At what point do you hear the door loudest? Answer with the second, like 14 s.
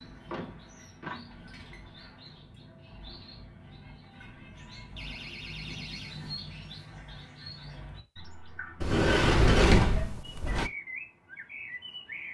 10 s.